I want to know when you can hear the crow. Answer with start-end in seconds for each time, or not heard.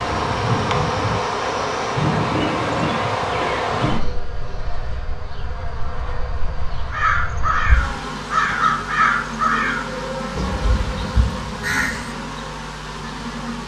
6.9-12.2.